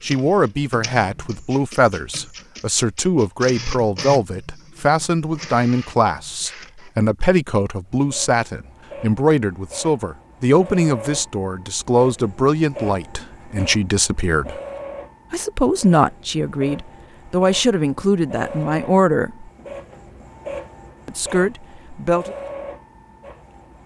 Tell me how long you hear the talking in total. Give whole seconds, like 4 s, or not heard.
20 s.